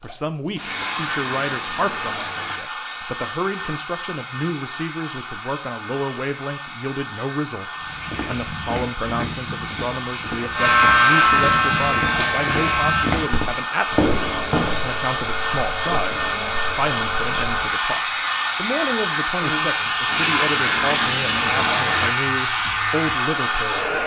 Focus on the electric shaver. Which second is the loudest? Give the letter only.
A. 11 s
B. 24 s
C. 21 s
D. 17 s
A.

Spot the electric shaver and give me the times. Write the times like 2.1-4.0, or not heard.
10.6-24.0.